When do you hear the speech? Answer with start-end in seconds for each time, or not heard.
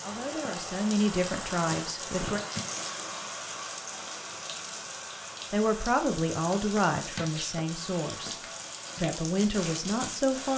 0.0-2.4, 5.5-8.3, 8.9-10.5.